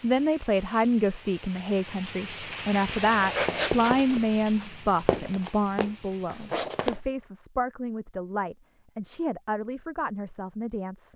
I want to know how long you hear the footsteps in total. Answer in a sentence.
You can hear the footsteps for 4 seconds altogether.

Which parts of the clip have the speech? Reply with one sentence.
You can hear the speech from 0.0 to 11.1 s.